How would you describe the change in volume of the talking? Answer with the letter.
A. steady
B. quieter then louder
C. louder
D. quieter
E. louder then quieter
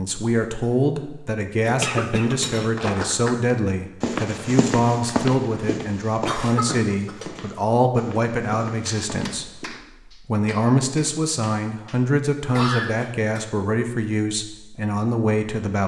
A.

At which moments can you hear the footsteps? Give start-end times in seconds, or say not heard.
2.2-9.8.